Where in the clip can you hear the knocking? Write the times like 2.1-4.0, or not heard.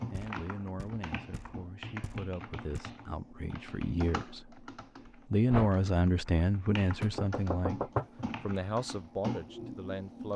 0.1-2.8, 7.0-8.2.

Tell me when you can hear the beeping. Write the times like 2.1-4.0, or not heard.
not heard.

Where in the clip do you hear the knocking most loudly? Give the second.
8 s.